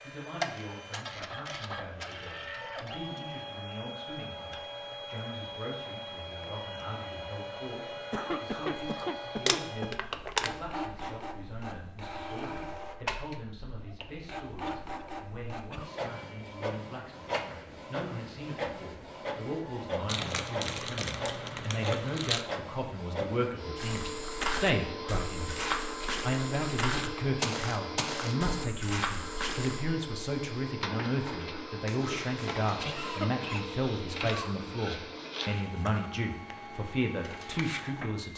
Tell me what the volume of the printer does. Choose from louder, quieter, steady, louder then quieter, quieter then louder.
steady.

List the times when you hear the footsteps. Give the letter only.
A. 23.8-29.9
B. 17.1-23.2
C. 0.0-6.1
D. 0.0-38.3
A.